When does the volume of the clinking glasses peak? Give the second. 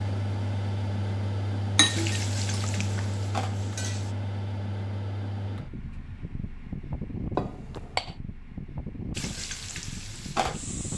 2 s.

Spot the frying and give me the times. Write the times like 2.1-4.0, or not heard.
1.8-4.2, 9.2-10.9.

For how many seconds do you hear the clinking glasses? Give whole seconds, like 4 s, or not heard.
2 s.